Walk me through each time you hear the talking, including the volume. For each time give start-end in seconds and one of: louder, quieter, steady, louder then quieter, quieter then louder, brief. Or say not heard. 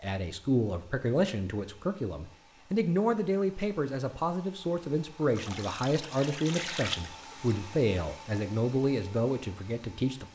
0.0-10.3 steady.